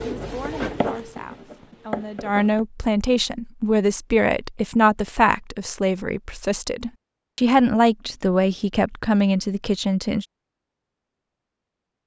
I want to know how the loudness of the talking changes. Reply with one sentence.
The volume of the talking goes up.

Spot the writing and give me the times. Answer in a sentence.
You can hear the writing from 0.0 to 2.6 s.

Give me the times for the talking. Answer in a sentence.
The talking can be heard from 0.0 to 10.2 s.